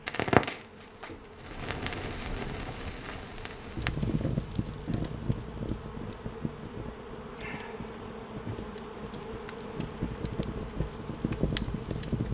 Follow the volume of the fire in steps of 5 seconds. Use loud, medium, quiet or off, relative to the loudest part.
loud, medium, loud.